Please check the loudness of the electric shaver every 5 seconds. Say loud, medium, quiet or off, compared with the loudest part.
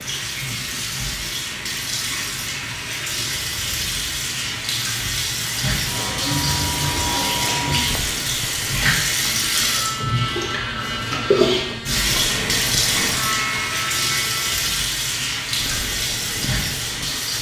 medium, loud, loud, medium.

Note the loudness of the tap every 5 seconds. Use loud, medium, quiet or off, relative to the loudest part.
medium, loud, loud, loud.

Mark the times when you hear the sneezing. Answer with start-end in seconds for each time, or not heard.
not heard.